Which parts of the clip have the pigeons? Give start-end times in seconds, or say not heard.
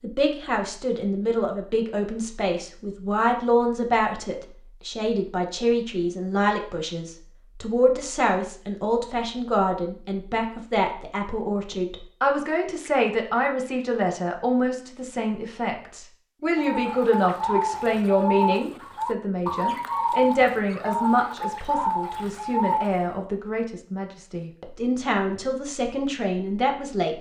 16.6-22.9.